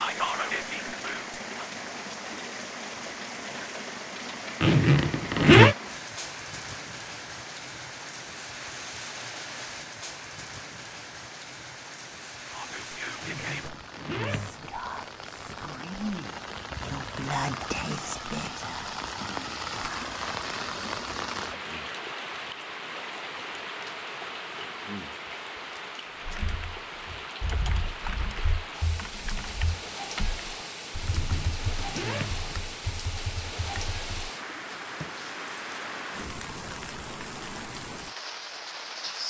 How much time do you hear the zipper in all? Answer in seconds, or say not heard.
4 s.